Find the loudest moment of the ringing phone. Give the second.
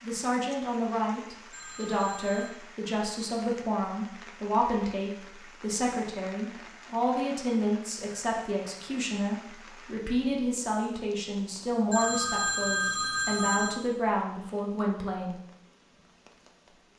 13 s.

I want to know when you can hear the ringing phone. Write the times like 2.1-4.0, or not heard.
1.5-2.5, 11.9-13.8.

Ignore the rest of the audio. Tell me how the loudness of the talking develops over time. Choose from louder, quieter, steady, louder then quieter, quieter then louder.
steady.